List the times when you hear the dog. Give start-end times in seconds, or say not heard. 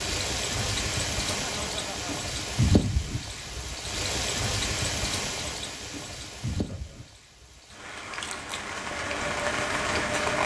not heard.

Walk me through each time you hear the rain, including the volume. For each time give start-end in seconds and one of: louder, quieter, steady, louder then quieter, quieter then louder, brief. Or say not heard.
0.0-10.4 quieter then louder.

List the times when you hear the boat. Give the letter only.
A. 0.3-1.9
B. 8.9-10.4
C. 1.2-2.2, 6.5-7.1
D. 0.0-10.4
B.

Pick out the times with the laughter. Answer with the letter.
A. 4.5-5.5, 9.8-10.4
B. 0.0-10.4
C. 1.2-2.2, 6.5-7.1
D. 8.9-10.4
C.